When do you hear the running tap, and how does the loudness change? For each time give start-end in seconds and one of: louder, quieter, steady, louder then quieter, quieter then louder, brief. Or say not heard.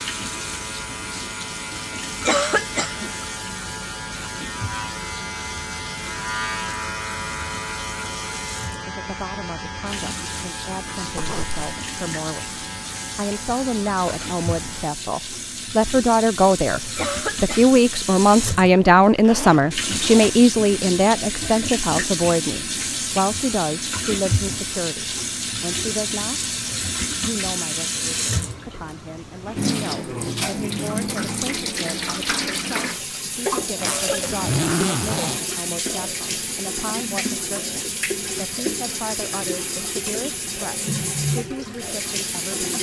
0.0-42.7 louder.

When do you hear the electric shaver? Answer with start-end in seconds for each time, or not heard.
0.0-14.9.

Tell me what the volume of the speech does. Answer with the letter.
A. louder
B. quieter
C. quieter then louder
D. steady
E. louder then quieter
E.